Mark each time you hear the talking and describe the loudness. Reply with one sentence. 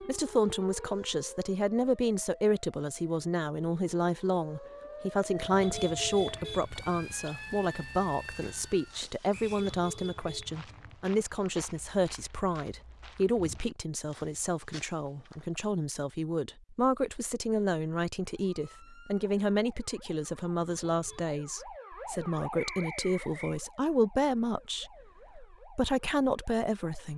The talking can be heard from 0.0 to 27.1 s, at a steady volume.